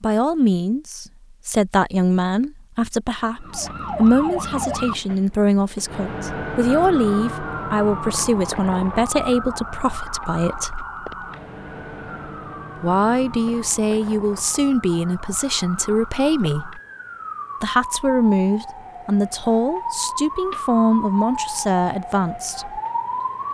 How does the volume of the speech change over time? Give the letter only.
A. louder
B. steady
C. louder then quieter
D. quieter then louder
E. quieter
B.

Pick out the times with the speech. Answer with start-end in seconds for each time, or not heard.
0.0-10.8, 12.8-16.8, 17.6-22.8.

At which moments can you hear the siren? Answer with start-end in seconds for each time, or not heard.
3.4-23.5.